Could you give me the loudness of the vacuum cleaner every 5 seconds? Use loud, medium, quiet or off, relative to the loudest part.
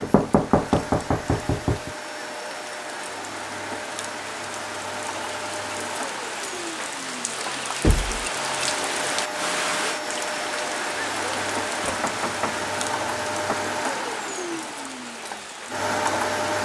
medium, medium, loud, loud.